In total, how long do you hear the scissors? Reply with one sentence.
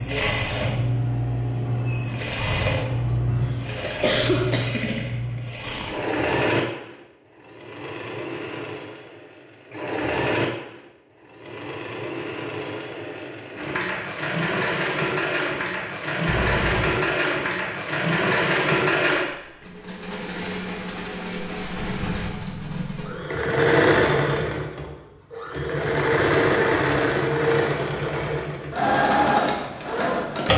The scissors can be heard for 3 seconds in total.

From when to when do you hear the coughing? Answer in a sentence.
You can hear the coughing from 3.3 to 4.9 s.